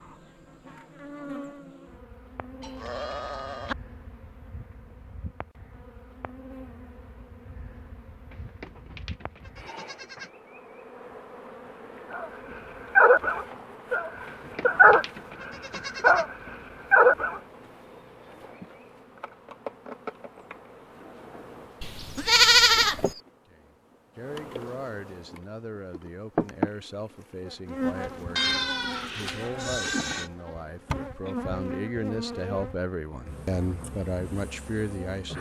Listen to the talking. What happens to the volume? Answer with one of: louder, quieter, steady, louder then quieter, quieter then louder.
louder.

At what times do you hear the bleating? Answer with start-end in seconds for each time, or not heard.
2.6-3.8, 8.3-10.3, 14.2-16.2, 21.8-23.1, 28.4-30.3.